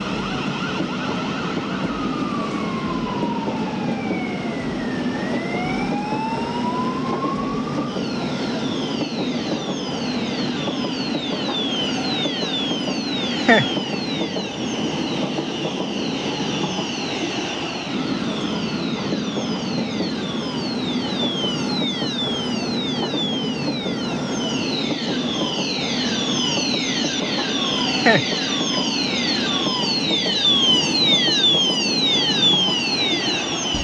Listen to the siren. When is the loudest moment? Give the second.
31 s.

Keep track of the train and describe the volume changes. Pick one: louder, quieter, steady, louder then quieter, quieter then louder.
steady.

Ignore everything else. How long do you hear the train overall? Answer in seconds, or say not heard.
34 s.